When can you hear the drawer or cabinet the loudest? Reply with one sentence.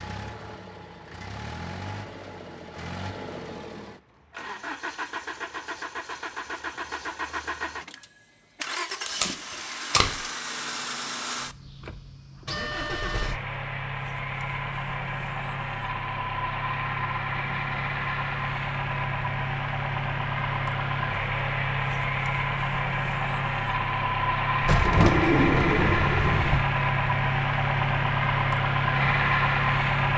The loudest moment of the drawer or cabinet is at 25 seconds.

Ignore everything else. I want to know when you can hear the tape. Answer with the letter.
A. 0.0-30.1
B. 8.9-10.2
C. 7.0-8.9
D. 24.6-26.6
B.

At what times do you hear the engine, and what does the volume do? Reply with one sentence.
The engine can be heard from 0.0 to 30.1 s, getting louder.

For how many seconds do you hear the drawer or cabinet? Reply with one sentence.
You can hear the drawer or cabinet for 2 seconds altogether.